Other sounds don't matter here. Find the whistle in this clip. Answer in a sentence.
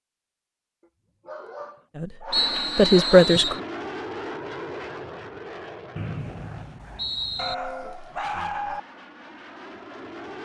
The whistle can be heard from 2.3 to 3.6 s and from 6.0 to 7.5 s.